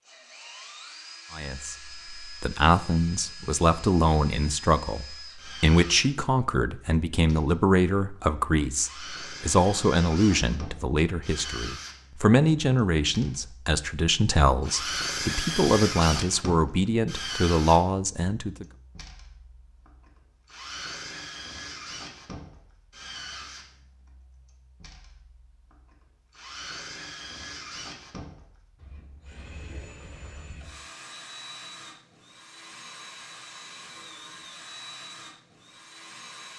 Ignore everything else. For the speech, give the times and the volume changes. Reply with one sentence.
The speech can be heard from 1.3 to 18.6 s, at a steady volume.